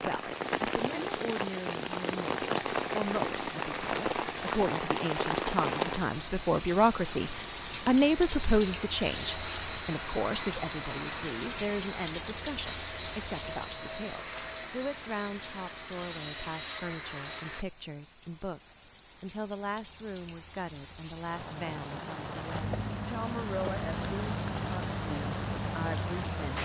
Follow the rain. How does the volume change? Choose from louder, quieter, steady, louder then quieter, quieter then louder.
quieter then louder.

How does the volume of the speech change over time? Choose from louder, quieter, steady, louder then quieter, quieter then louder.
louder then quieter.